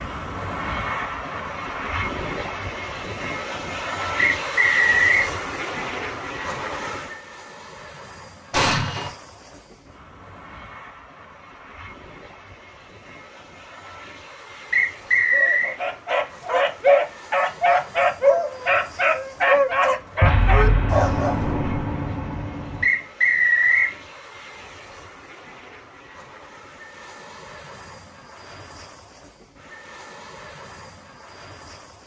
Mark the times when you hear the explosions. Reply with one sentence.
You can hear the explosions from 8.5 to 9.1 s and from 20.2 to 22.9 s.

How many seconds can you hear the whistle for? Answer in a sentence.
The whistle can be heard for 3 seconds in total.